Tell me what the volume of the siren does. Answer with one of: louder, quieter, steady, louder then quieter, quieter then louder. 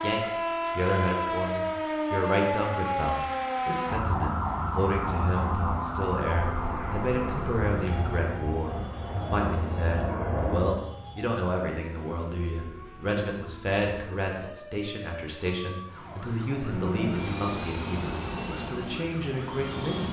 quieter.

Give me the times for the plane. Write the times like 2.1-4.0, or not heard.
6.2-10.8, 16.6-20.0.